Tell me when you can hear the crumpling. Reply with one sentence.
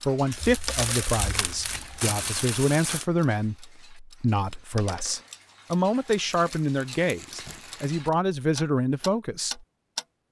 You can hear the crumpling from 0.3 to 3.0 s and from 6.3 to 8.0 s.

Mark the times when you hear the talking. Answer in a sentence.
The talking can be heard from 0.0 to 9.6 s.